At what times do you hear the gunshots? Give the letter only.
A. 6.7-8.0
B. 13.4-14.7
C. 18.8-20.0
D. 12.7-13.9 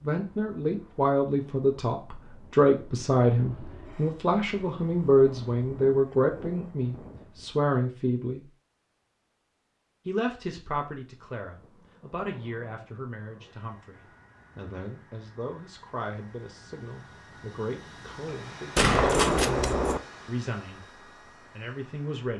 C.